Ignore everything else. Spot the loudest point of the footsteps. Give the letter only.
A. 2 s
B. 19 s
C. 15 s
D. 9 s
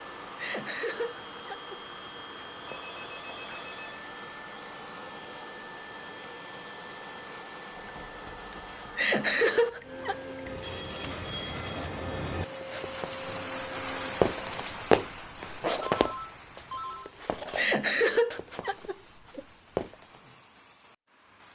C.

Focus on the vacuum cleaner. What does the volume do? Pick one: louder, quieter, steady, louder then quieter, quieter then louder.
steady.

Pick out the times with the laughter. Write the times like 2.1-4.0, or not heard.
0.3-1.8, 8.9-10.3, 17.6-19.4.